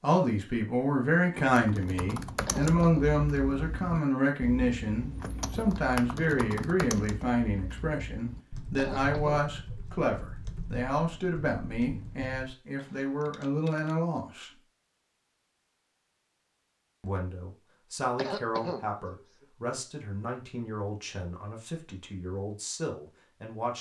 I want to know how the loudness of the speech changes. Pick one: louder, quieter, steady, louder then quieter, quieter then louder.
quieter.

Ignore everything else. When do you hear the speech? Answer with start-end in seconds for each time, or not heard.
0.0-14.6, 17.0-23.7.